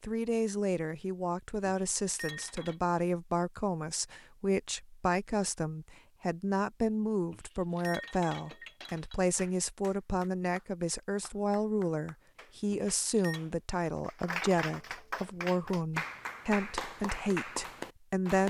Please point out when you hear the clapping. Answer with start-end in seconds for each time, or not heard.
8.8-18.4.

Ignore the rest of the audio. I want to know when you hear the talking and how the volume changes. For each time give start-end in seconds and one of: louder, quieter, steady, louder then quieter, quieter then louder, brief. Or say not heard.
0.0-18.4 steady.